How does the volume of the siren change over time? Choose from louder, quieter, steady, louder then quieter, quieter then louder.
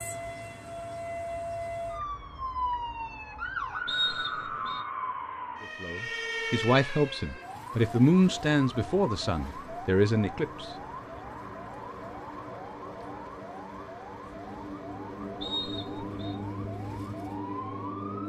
quieter.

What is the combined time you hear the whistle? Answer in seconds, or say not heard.
2 s.